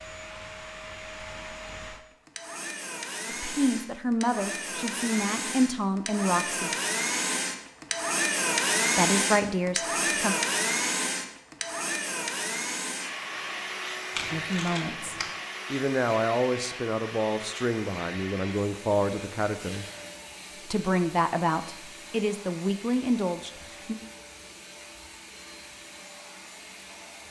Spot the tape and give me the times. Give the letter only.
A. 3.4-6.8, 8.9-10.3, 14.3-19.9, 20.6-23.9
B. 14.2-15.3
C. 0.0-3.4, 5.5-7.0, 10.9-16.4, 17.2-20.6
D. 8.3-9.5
B.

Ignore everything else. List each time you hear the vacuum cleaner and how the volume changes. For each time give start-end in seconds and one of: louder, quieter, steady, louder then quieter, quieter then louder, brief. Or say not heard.
0.0-27.2 louder then quieter.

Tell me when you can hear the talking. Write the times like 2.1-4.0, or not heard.
3.4-6.8, 8.9-10.3, 14.3-19.9, 20.6-23.9.